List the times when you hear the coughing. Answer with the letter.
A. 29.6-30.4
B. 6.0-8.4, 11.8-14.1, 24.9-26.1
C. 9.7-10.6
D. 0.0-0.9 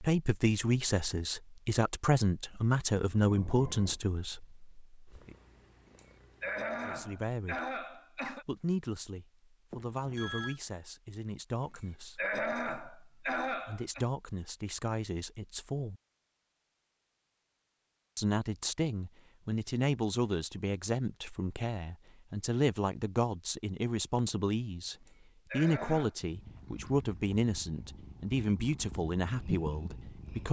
B.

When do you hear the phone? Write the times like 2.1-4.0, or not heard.
9.7-10.6.